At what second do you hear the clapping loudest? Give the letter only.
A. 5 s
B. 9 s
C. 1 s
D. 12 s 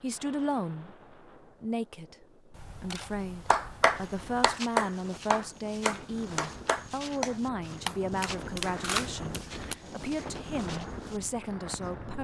A.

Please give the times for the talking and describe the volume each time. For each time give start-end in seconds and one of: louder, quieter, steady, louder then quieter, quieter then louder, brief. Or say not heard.
0.0-12.1 steady.